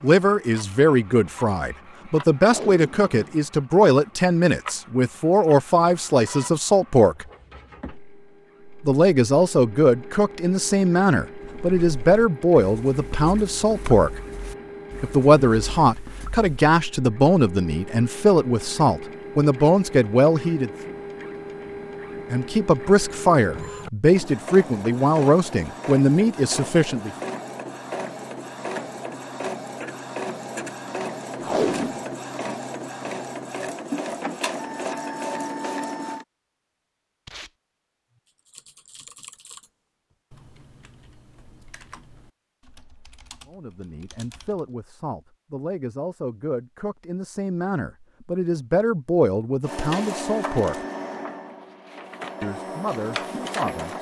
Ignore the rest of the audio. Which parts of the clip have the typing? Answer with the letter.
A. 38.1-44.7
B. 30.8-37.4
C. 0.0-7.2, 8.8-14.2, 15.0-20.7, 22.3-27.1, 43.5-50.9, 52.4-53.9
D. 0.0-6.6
A.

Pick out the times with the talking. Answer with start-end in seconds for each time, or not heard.
0.0-7.2, 8.8-14.2, 15.0-20.7, 22.3-27.1, 43.5-50.9, 52.4-53.9.